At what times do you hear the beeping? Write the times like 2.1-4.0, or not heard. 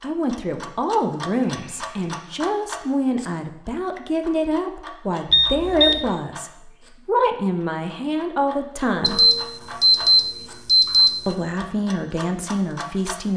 1.4-2.1, 5.3-6.0, 9.0-11.2.